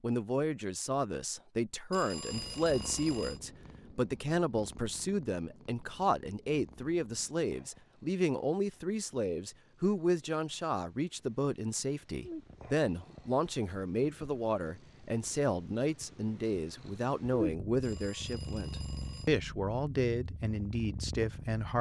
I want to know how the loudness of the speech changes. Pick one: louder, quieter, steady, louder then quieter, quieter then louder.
steady.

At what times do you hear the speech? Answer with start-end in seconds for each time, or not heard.
0.0-21.7.